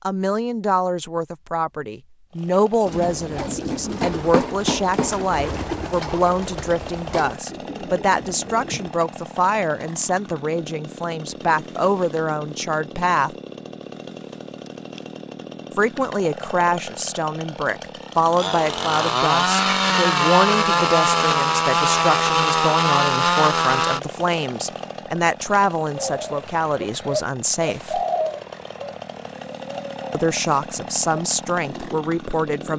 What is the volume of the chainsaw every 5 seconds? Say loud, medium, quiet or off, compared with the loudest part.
quiet, quiet, quiet, medium, loud, quiet, quiet.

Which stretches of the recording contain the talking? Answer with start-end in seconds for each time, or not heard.
0.0-13.3, 15.7-28.0, 30.1-32.7.